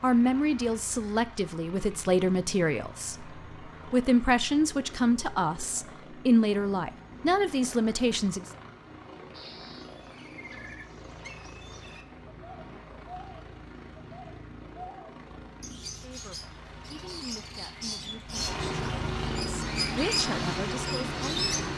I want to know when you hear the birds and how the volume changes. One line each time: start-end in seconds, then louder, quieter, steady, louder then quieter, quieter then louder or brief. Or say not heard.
9.3-21.7 louder.